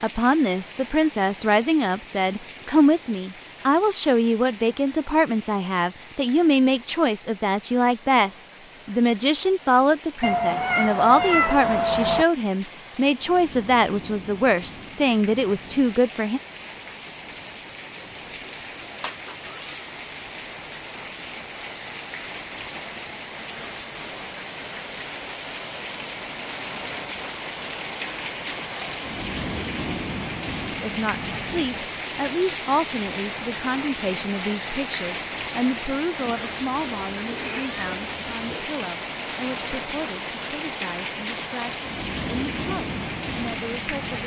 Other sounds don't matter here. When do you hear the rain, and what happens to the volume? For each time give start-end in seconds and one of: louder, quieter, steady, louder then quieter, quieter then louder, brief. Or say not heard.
0.0-44.2 louder.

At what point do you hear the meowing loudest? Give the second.
11 s.